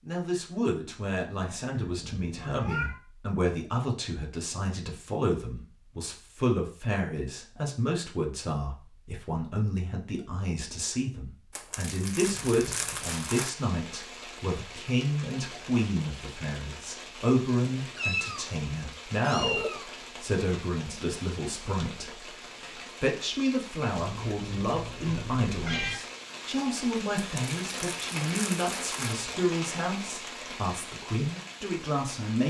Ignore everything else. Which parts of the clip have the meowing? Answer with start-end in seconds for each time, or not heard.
1.7-3.0, 17.9-19.9, 23.9-25.9.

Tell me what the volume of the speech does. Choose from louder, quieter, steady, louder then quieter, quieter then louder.
steady.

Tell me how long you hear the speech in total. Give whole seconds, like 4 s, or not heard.
32 s.